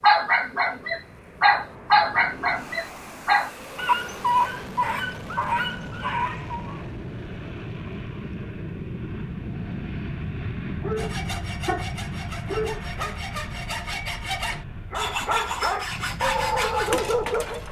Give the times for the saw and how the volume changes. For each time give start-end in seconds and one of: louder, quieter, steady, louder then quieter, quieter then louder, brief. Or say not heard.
10.9-17.6 louder.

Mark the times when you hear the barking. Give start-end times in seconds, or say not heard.
0.0-6.8, 10.8-13.2, 14.9-17.6.